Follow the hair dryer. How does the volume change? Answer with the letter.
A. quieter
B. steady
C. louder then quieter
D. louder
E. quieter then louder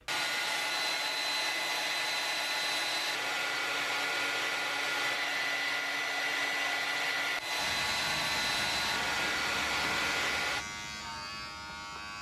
B.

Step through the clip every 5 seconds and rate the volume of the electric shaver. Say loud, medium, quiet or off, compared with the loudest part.
off, loud, loud.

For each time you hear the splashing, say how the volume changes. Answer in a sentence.
You can't hear the splashing here.